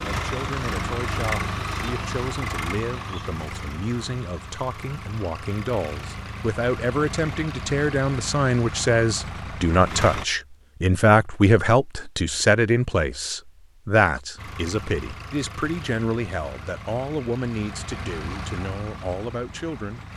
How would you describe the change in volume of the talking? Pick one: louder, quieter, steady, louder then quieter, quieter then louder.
louder then quieter.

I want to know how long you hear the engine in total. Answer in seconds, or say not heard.
16 s.